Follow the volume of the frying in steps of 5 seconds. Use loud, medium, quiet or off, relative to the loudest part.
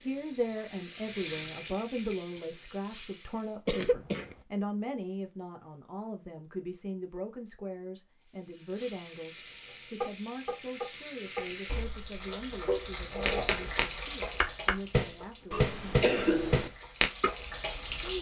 medium, medium, loud, loud.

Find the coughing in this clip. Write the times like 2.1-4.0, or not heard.
3.6-4.3, 15.5-16.7.